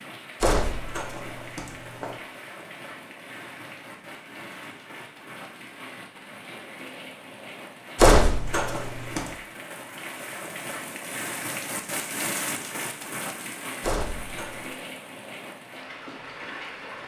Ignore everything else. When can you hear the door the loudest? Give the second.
8 s.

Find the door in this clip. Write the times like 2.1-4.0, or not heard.
0.4-2.1, 8.0-9.2, 13.8-14.7.